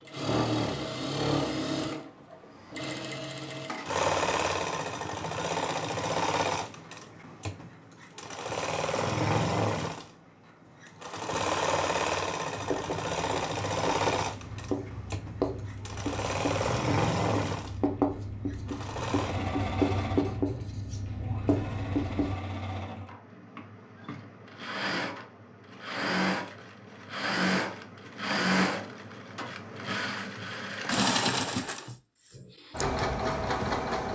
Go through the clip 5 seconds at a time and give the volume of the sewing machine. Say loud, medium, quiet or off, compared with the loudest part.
loud, loud, loud, loud, medium, loud, loud.